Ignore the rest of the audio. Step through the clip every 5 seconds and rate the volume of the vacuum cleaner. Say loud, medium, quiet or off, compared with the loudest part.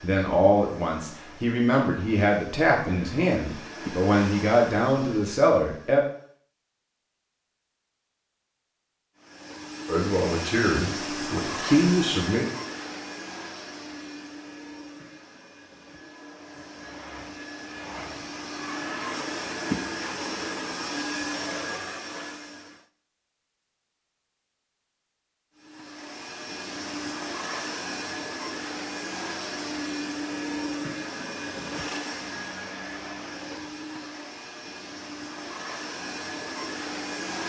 medium, medium, loud, loud, loud, loud, loud, loud.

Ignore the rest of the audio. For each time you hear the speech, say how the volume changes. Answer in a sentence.
The speech can be heard from 0.0 to 6.0 s, at a steady volume; and briefly from 9.8 to 12.4 s.